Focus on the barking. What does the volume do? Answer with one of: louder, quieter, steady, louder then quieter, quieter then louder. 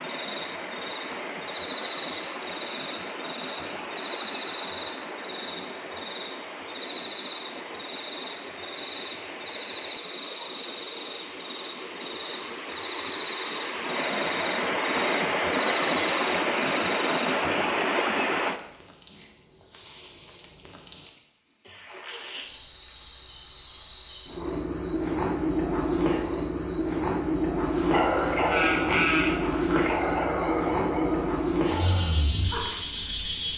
quieter.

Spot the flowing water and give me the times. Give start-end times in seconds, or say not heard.
0.0-18.6.